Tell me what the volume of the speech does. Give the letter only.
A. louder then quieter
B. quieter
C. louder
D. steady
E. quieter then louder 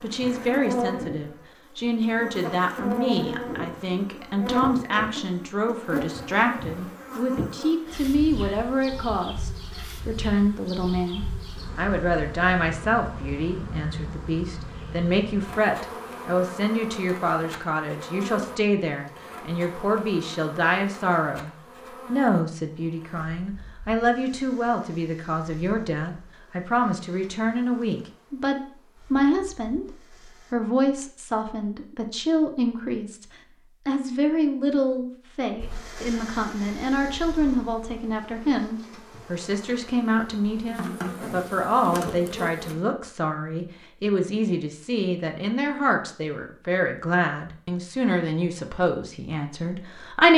D.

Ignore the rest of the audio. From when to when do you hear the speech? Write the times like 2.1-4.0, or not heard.
0.0-33.2, 33.9-50.3.